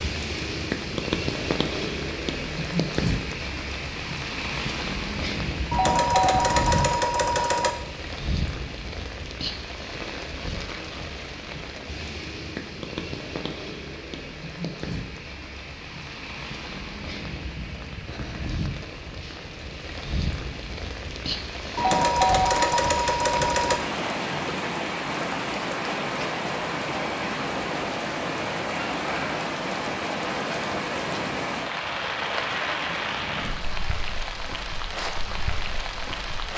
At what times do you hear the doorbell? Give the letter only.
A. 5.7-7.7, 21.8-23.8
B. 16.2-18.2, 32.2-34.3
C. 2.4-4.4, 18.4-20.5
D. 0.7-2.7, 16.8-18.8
A.